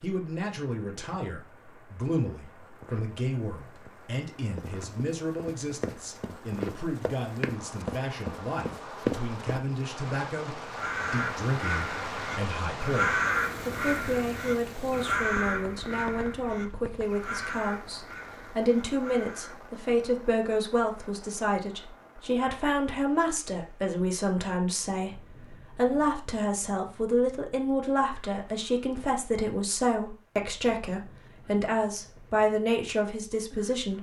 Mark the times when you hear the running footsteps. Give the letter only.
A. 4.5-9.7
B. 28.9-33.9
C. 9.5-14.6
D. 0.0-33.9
A.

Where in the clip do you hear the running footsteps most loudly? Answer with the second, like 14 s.
9 s.